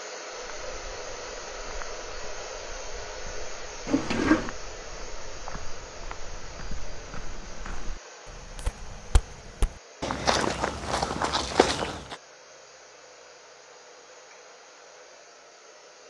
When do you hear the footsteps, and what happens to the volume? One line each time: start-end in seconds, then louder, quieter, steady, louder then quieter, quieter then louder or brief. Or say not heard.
0.3-12.2 louder.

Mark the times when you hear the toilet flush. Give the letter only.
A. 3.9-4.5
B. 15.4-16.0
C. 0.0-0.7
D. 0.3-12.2
A.